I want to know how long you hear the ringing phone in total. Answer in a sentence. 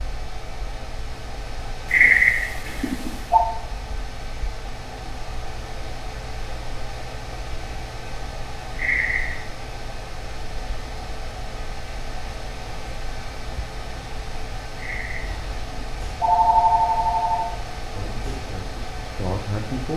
The ringing phone can be heard for 5 seconds in total.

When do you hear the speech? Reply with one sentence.
You can hear the speech from 17.8 to 19.9 s.